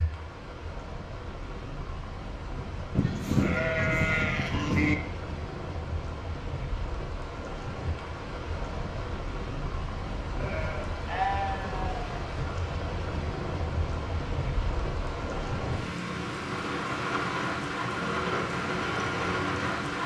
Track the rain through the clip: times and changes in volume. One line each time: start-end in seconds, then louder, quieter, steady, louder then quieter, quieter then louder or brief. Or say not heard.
0.0-20.0 louder.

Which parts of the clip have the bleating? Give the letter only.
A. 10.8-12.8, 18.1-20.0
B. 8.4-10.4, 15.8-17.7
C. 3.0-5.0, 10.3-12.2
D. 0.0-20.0
C.